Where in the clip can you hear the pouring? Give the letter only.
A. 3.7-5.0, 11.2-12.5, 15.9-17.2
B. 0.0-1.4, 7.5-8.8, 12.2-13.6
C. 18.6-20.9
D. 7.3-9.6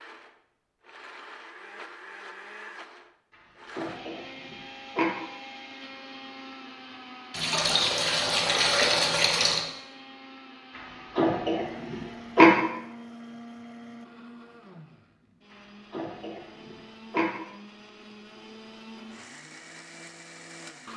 D.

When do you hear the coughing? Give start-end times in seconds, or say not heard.
3.7-5.0, 11.2-12.5, 15.9-17.2.